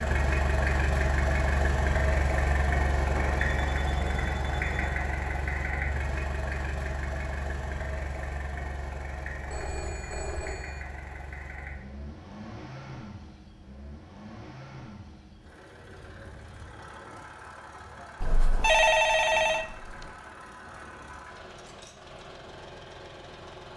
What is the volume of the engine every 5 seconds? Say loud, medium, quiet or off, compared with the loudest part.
loud, medium, quiet, quiet, quiet.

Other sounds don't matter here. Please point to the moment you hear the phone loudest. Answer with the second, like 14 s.
19 s.